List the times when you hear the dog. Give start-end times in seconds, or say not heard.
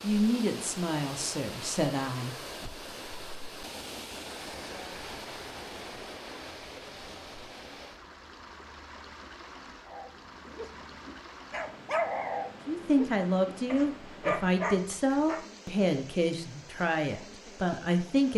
9.8-15.4.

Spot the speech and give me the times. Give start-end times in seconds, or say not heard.
0.0-2.4, 12.7-18.3.